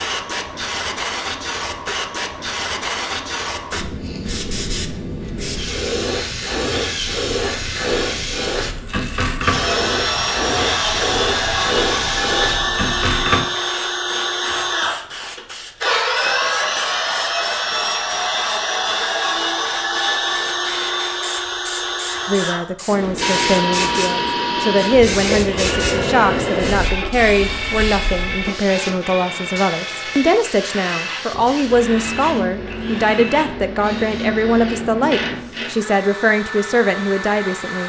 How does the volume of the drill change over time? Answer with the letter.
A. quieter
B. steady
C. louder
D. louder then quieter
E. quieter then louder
A.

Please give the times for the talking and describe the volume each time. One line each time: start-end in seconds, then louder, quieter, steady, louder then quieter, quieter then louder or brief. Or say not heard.
22.2-37.8 steady.